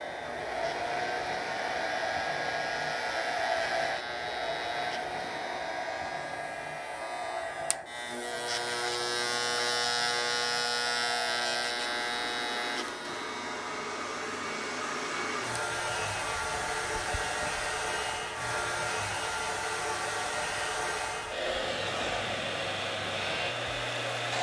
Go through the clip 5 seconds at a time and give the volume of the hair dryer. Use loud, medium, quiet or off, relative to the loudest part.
loud, medium, medium, loud, loud.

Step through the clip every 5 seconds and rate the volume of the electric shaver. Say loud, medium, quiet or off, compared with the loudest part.
medium, loud, loud, medium, medium.